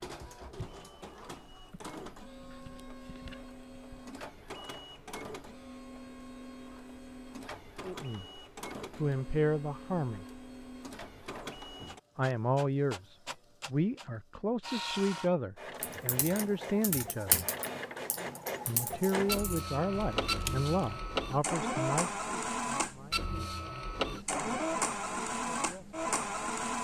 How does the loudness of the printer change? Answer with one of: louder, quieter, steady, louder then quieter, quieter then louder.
louder.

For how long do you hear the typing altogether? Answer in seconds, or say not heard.
5 s.